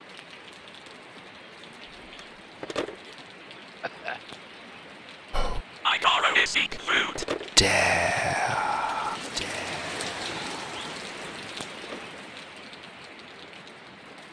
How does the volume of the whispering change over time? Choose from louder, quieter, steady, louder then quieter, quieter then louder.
quieter.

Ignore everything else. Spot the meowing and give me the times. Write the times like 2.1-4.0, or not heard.
not heard.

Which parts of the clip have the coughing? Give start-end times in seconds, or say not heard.
3.8-4.2.